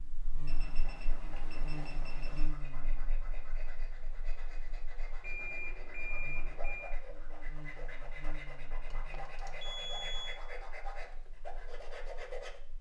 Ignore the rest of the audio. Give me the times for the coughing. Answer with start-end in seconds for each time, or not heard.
not heard.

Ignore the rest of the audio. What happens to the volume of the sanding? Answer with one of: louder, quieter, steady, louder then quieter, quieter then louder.
louder.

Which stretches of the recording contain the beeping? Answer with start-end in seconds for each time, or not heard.
0.5-2.5, 5.2-7.0, 8.8-10.4.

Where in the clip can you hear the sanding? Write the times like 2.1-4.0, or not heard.
0.6-12.6.